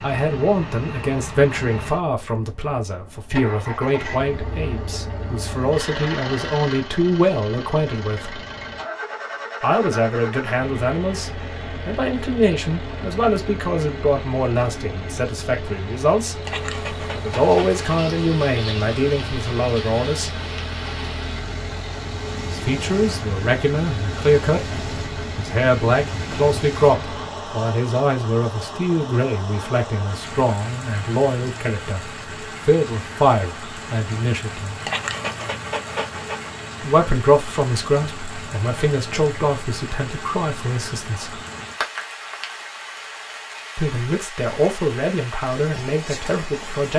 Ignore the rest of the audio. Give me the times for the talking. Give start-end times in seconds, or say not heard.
0.0-8.4, 9.6-20.4, 22.4-24.6, 25.4-34.8, 36.8-41.4, 43.8-46.9.